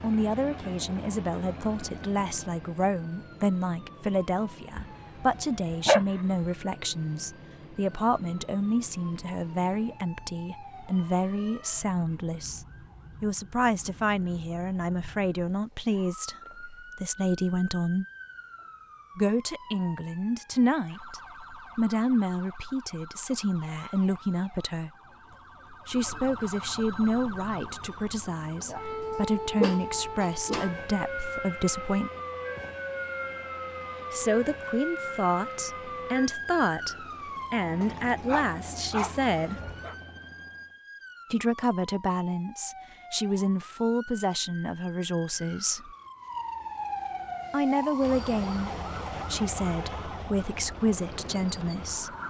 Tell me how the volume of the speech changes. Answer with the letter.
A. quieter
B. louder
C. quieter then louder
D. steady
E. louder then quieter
D.